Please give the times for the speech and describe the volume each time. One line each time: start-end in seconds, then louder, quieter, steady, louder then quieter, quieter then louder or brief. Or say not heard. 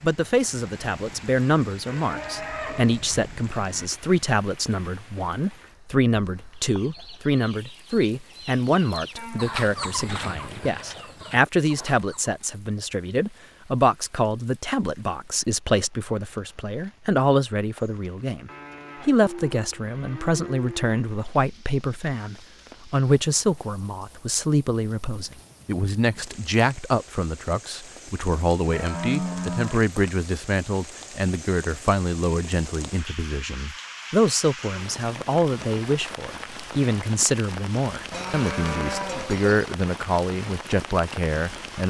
0.0-41.8 steady.